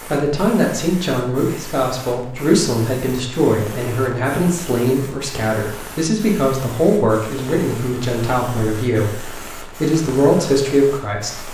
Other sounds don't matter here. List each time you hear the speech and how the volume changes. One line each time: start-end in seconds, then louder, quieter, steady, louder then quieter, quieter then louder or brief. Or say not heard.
0.1-11.4 steady.